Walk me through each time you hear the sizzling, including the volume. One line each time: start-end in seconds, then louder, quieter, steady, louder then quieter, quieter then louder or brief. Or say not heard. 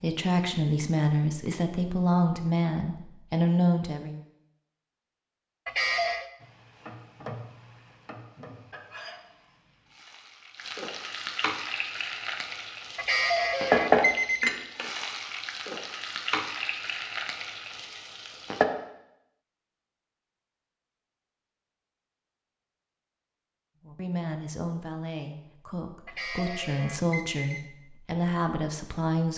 6.4-18.6 louder then quieter.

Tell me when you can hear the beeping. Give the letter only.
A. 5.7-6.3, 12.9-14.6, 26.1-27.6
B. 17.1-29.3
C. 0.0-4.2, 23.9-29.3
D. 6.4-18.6
A.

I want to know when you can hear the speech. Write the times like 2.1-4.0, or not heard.
0.0-4.2, 23.9-29.3.